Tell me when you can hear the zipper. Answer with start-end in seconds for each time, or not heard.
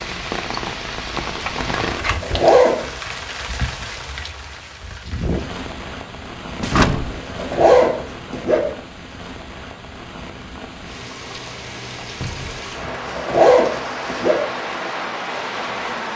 1.9-2.9, 7.0-8.7, 12.8-14.4.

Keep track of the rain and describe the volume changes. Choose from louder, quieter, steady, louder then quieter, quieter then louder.
quieter then louder.